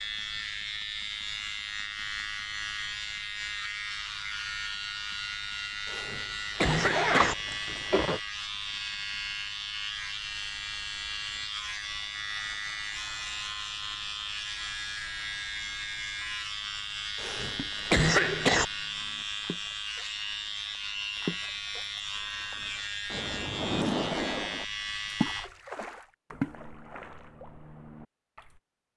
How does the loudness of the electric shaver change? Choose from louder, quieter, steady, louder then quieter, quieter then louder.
steady.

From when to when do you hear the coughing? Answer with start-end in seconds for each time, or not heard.
5.8-7.3, 17.1-18.6.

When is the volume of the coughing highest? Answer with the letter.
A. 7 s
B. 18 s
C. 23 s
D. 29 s
B.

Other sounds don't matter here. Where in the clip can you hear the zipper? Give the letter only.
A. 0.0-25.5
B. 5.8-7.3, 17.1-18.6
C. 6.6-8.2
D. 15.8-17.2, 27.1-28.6
C.